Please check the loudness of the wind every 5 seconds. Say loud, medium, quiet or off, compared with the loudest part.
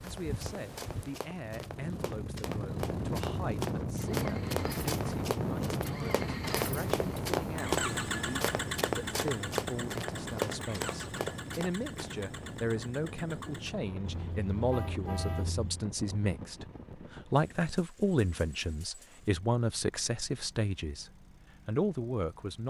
loud, loud, medium, medium, off.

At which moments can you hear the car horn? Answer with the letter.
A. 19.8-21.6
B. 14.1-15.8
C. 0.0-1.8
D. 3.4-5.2
B.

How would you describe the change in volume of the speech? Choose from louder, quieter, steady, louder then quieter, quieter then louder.
louder.